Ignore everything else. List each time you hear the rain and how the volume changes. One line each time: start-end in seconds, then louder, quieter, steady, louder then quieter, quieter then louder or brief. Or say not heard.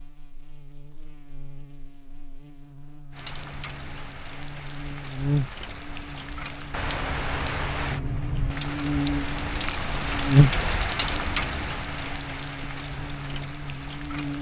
3.1-14.3 louder then quieter.